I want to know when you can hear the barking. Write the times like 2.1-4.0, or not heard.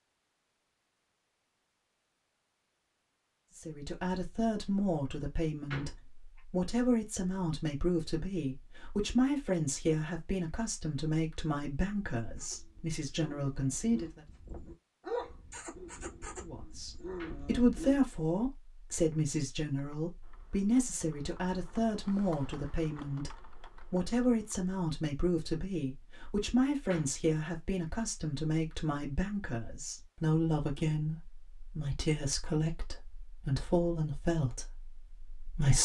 12.2-18.0.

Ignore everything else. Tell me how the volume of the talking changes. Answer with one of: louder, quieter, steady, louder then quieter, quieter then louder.
steady.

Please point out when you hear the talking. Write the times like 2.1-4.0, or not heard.
3.5-14.2, 16.4-35.8.